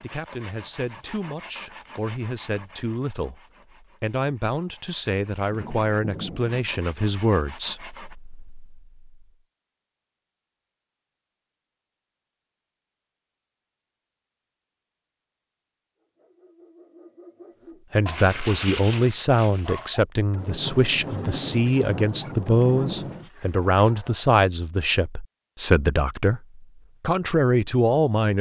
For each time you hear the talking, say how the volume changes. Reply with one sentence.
The talking can be heard from 0.0 to 8.6 s, getting louder; and from 17.9 to 28.3 s, at a steady volume.